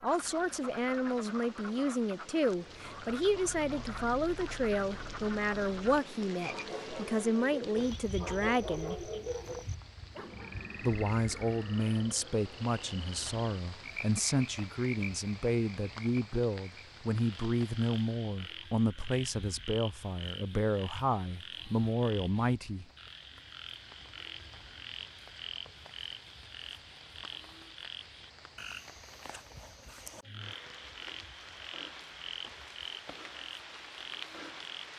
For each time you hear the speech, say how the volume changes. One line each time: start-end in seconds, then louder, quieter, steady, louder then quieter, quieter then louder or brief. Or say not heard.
0.0-9.1 steady
10.8-22.9 steady.